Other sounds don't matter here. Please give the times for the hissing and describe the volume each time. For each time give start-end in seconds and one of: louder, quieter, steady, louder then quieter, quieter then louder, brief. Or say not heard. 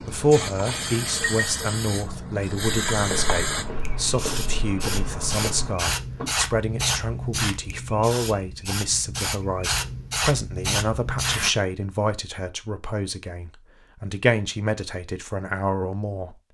0.0-11.5 steady.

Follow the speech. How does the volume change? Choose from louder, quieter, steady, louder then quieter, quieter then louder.
steady.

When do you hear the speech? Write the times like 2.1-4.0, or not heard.
0.0-16.4.